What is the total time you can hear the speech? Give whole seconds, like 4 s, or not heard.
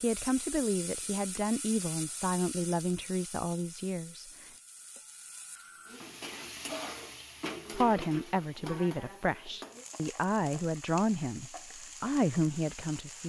10 s.